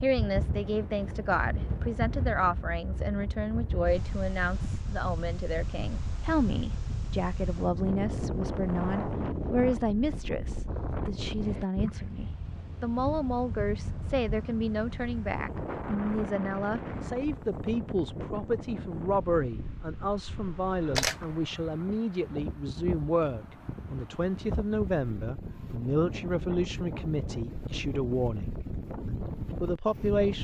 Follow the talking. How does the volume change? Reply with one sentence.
The loudness of the talking stays about the same.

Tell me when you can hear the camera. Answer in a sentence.
The camera can be heard from 20.9 to 21.4 s.